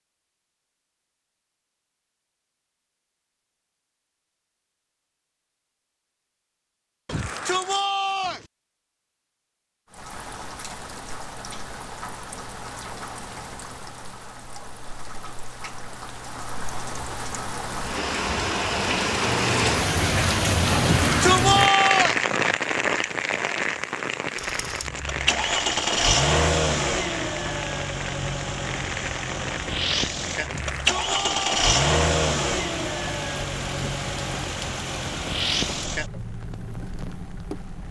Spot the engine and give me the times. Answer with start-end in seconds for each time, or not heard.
24.4-37.8.